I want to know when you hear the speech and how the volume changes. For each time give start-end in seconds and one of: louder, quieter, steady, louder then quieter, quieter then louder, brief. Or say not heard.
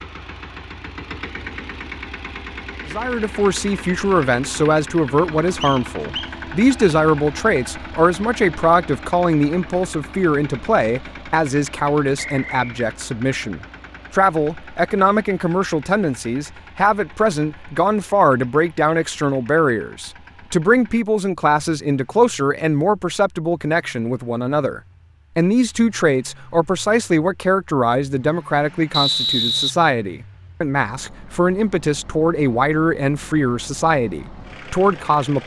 2.9-35.4 steady.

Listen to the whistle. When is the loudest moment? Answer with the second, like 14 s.
29 s.